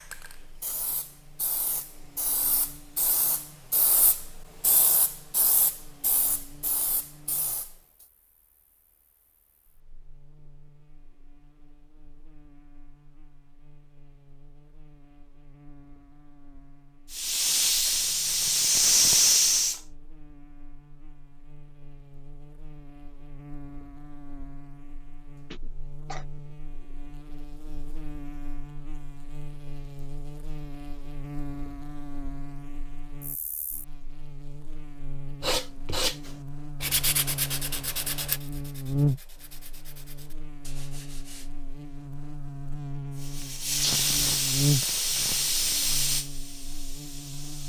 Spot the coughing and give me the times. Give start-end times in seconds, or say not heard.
25.5-26.2.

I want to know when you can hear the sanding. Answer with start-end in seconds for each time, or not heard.
35.4-41.5.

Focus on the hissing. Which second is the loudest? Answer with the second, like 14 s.
19 s.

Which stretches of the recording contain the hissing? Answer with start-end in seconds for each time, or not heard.
0.0-8.1, 17.1-19.8, 43.2-47.6.